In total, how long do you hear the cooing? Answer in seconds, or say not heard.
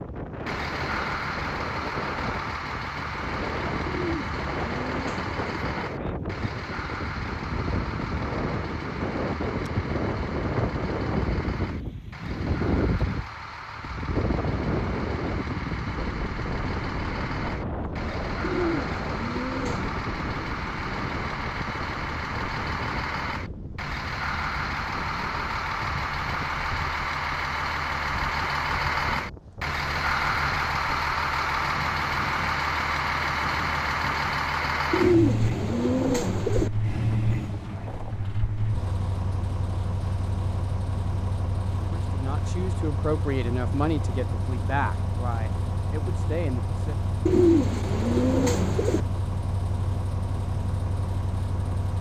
7 s.